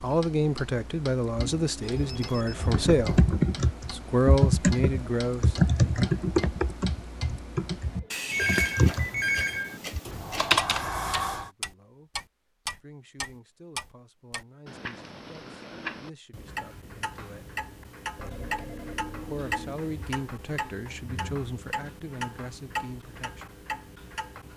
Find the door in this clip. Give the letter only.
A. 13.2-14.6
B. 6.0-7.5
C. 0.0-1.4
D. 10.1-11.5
D.